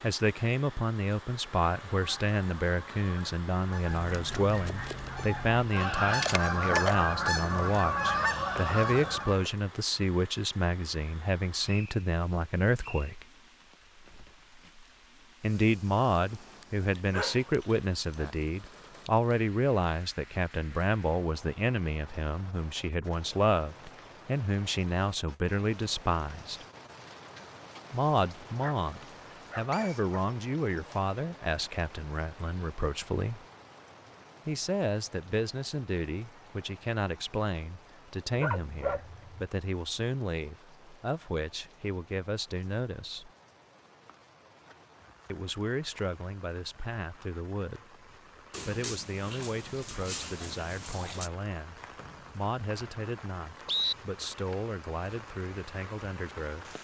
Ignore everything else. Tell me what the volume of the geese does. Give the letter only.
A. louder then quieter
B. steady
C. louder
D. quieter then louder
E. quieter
C.